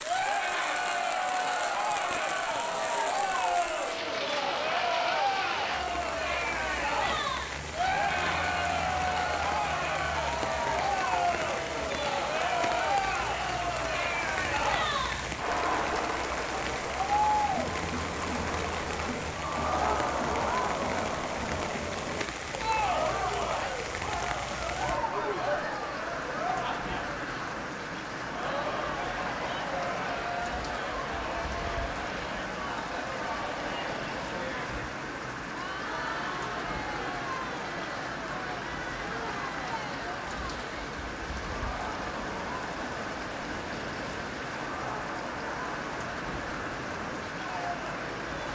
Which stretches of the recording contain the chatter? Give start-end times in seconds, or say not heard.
0.0-48.5.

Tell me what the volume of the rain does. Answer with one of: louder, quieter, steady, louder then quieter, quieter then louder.
steady.